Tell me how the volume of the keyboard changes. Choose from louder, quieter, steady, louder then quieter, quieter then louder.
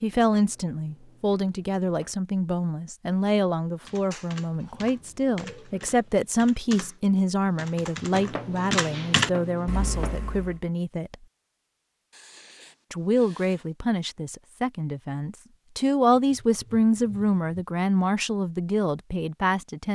louder.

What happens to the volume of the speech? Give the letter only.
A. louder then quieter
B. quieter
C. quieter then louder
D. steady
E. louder
D.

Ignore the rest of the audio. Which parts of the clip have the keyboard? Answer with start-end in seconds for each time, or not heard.
3.9-10.6.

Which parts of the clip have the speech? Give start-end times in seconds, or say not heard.
0.0-11.2, 12.9-19.9.